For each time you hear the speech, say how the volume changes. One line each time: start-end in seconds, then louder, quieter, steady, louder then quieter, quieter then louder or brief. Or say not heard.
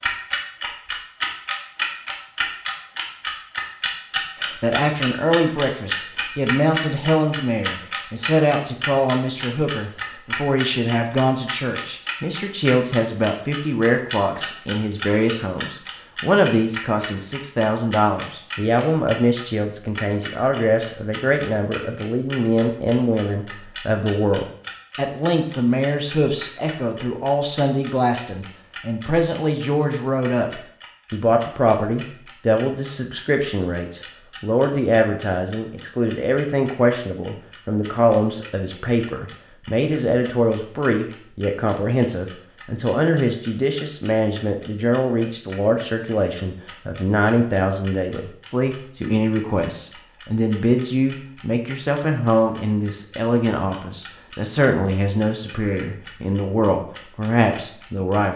4.4-58.3 steady.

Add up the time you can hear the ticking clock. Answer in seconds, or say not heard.
58 s.